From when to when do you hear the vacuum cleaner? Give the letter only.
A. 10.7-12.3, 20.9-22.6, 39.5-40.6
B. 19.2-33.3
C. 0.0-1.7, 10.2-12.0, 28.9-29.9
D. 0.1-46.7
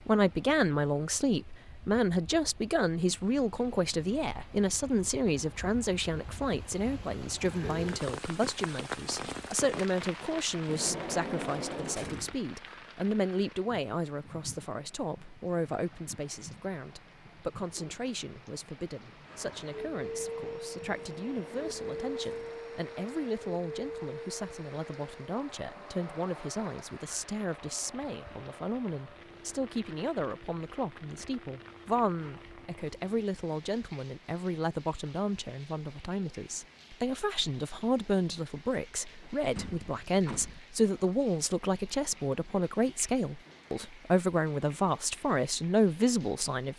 B.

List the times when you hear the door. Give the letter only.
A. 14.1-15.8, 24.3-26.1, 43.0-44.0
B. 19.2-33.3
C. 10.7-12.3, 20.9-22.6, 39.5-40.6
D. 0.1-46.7
C.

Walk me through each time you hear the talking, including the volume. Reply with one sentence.
You can hear the talking from 0.1 to 46.7 s, getting quieter then louder.